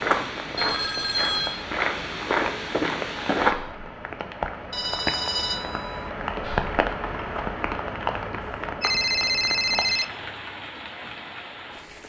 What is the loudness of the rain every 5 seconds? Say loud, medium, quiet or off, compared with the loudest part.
medium, loud, medium.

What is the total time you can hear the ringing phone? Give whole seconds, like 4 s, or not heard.
4 s.